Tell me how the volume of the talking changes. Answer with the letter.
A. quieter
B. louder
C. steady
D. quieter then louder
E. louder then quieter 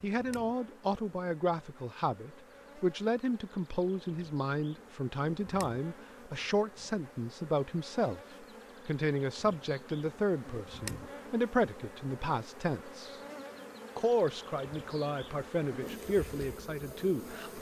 C.